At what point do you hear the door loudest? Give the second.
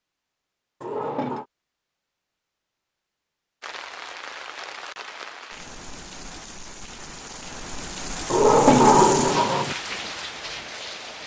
9 s.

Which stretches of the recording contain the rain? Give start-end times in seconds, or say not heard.
3.6-11.2.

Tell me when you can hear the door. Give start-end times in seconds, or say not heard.
0.8-1.4, 8.3-9.8.